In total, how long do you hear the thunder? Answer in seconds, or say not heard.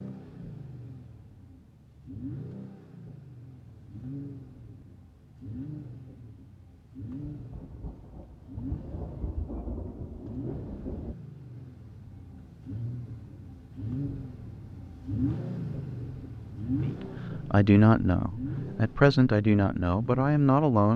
4 s.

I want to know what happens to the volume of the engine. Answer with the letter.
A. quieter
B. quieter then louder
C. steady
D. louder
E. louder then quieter
D.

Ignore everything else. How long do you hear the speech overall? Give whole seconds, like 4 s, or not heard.
4 s.